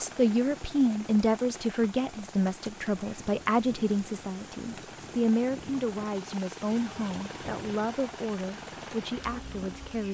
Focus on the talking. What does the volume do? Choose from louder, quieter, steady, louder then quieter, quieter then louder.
quieter.